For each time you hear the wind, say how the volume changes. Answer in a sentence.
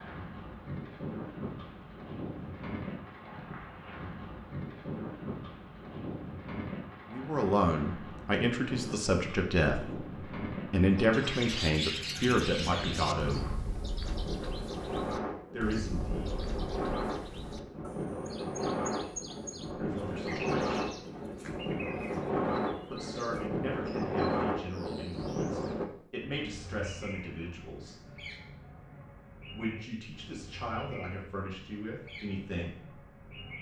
The wind can be heard from 0.0 to 25.9 s, getting louder.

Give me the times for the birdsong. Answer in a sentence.
You can hear the birdsong from 10.9 to 33.5 s.